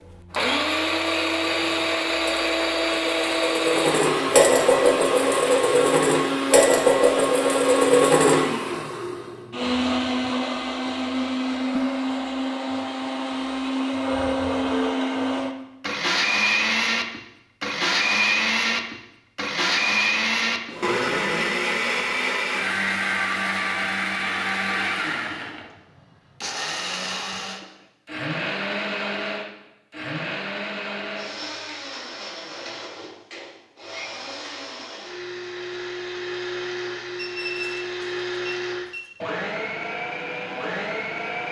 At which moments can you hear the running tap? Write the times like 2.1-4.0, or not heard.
not heard.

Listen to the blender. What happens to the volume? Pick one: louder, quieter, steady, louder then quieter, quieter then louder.
quieter.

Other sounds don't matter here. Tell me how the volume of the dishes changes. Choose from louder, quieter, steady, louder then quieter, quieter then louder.
louder.